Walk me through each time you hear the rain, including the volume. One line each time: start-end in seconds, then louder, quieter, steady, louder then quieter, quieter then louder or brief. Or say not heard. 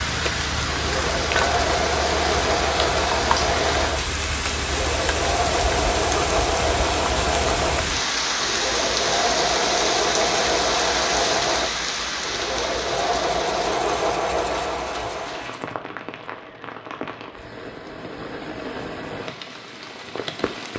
0.0-20.7 quieter.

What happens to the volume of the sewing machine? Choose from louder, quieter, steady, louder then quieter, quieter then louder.
steady.